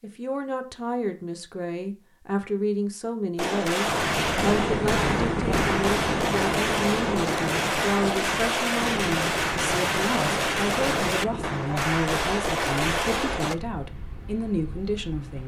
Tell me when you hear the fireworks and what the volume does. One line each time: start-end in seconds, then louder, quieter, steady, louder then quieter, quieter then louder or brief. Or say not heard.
3.4-13.6 steady.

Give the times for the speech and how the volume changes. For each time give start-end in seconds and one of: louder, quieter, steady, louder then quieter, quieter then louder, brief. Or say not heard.
0.0-15.4 steady.